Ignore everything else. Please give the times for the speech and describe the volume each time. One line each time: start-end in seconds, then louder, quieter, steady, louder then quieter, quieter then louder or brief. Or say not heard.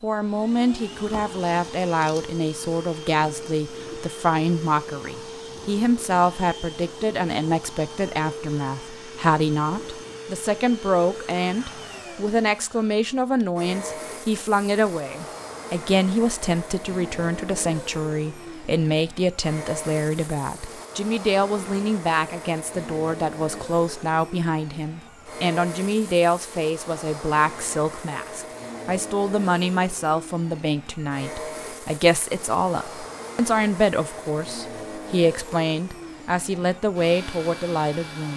0.0-38.3 steady.